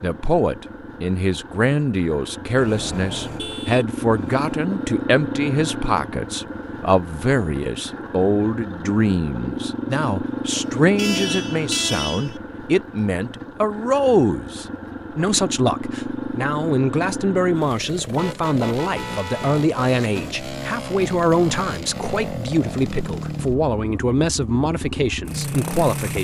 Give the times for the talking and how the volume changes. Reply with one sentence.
You can hear the talking from 0.0 to 26.1 s, at a steady volume.